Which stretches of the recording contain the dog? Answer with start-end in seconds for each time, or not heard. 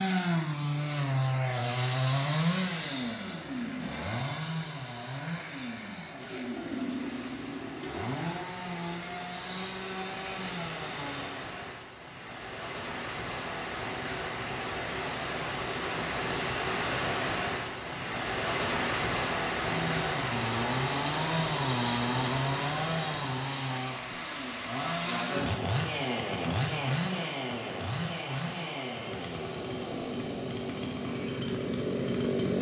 not heard.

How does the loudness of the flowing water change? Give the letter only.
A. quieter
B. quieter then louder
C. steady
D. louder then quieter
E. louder
D.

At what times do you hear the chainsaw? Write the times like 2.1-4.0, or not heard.
0.0-11.4, 19.6-32.5.